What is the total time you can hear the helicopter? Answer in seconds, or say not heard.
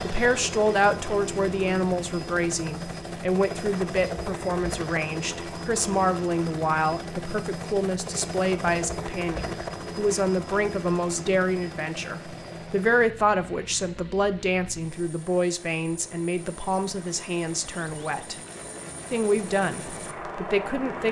21 s.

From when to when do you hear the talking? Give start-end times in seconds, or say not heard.
0.0-18.4, 19.1-21.0.